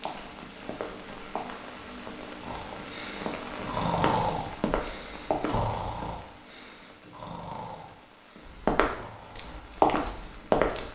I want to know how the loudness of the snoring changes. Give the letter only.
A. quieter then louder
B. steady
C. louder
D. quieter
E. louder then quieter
D.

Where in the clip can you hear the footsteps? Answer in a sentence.
The footsteps can be heard from 0.0 to 6.0 s and from 8.4 to 10.8 s.